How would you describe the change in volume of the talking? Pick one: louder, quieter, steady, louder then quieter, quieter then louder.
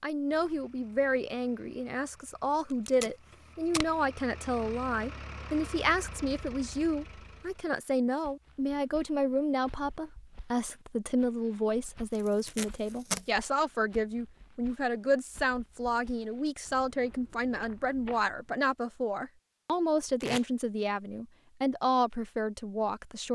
steady.